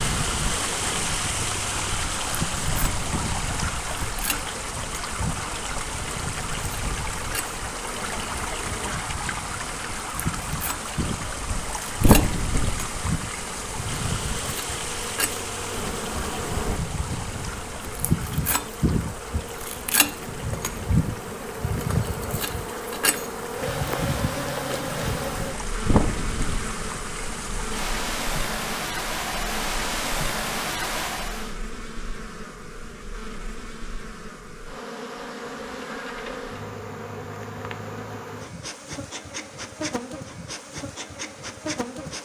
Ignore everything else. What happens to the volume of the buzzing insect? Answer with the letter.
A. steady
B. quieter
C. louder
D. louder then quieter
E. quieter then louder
D.